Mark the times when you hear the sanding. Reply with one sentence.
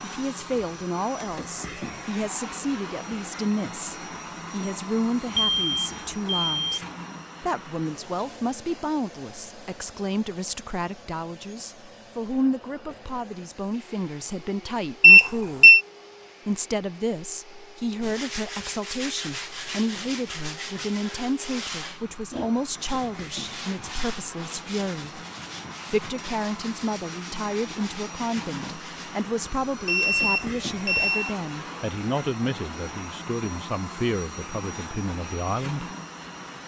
You can hear the sanding from 18.0 to 29.2 s.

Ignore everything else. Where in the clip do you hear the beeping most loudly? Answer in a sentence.
The loudest moment of the beeping is at 15 seconds.